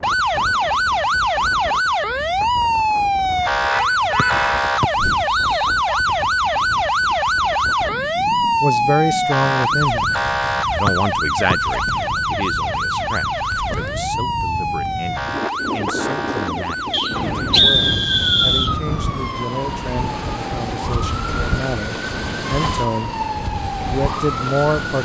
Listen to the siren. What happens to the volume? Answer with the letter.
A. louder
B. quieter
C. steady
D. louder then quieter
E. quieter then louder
B.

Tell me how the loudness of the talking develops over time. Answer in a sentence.
The loudness of the talking goes down, then up.